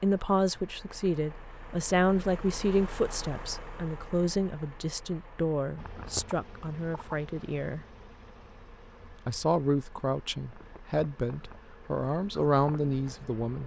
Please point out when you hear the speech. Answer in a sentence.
The speech can be heard from 0.0 to 7.8 s and from 9.2 to 13.6 s.